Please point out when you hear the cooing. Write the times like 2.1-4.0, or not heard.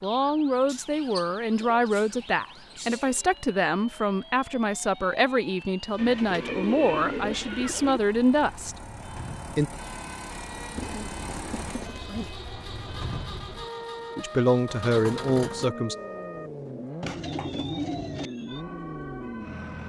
0.7-3.2, 6.0-8.0, 10.8-12.3, 17.0-18.3.